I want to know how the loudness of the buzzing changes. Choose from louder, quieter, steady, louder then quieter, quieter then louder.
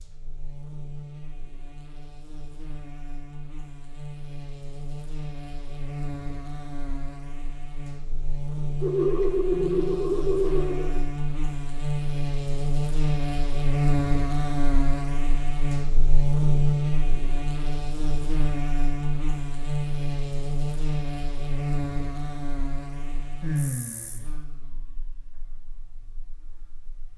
louder then quieter.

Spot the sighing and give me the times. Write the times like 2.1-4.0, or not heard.
8.8-11.0, 23.4-24.3.